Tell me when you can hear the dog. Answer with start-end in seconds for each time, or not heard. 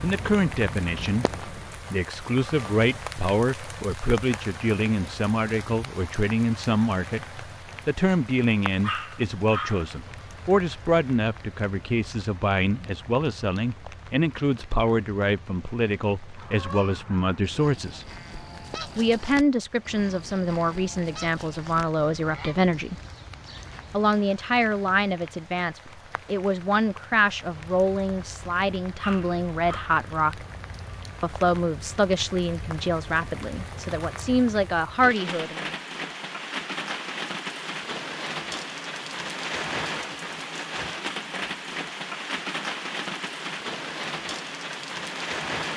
8.8-9.9, 28.9-29.9.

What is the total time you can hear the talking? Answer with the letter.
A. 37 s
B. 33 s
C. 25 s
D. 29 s
B.